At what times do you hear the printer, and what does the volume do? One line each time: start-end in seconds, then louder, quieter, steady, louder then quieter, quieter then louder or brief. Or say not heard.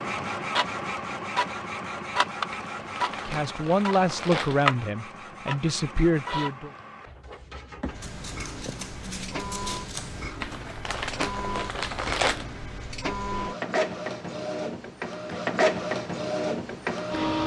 0.0-17.4 quieter then louder.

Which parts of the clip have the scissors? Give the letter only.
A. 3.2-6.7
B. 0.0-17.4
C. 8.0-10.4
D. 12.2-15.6
C.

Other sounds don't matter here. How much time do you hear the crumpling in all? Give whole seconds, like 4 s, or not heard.
4 s.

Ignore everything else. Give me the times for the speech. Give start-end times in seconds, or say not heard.
3.2-6.7.